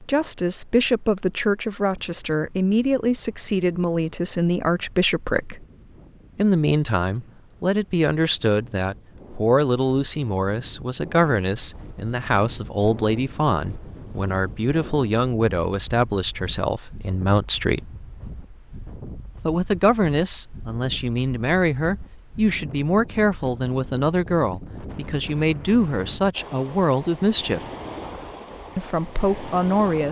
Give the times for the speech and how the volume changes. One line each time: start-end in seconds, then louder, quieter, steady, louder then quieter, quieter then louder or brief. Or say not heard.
0.0-5.7 steady
6.3-17.9 steady
19.4-27.6 steady
28.8-30.0 brief.